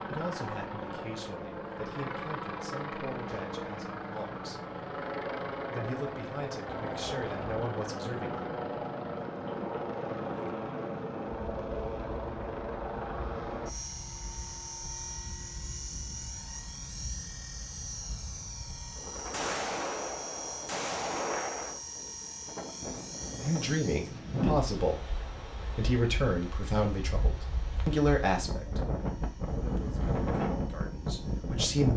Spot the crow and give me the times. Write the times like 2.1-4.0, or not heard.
not heard.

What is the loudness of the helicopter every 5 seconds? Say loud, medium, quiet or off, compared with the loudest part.
loud, loud, loud, medium, medium, quiet, quiet.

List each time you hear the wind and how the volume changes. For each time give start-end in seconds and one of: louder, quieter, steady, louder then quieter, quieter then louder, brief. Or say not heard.
6.7-31.9 quieter then louder.